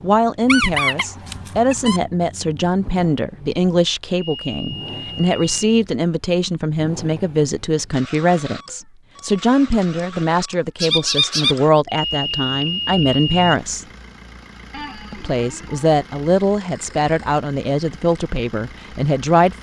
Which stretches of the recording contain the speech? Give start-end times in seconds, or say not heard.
0.0-13.8, 15.1-19.5.